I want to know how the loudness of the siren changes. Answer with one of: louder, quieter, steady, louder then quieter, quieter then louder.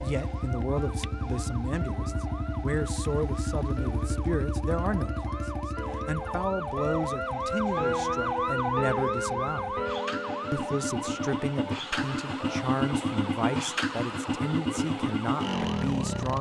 louder then quieter.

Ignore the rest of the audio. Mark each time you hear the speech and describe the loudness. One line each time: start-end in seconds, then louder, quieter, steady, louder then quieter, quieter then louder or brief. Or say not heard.
0.0-9.8 steady
10.5-16.3 steady.